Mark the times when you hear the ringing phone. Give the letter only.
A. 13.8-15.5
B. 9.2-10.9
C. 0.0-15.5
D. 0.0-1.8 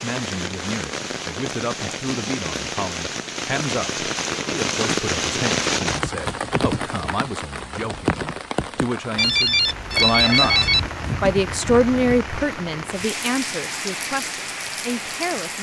B.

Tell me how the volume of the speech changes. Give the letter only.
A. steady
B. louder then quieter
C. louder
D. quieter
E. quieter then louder
B.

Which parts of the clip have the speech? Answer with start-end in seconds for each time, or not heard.
0.0-15.5.